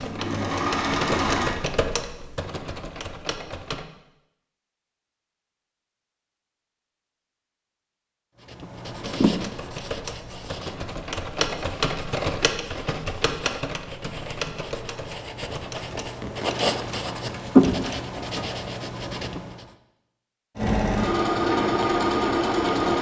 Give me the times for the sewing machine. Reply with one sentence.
You can hear the sewing machine from 0.0 to 1.6 s and from 20.6 to 22.9 s.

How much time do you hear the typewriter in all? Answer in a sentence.
You can hear the typewriter for 13 seconds altogether.